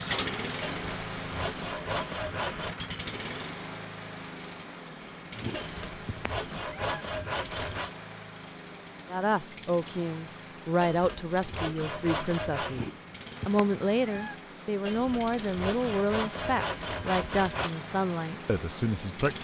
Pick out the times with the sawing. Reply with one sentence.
The sawing can be heard from 0.6 to 2.8 s, from 5.5 to 7.9 s, from 10.8 to 12.8 s and from 14.8 to 17.7 s.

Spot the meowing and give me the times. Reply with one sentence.
You can hear the meowing from 5.3 to 7.0 s and from 12.7 to 14.3 s.